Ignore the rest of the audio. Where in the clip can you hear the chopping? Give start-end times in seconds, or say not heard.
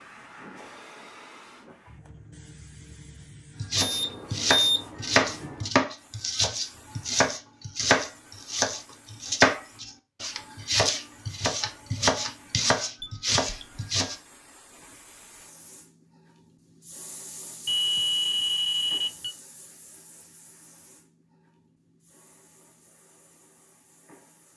3.6-14.2.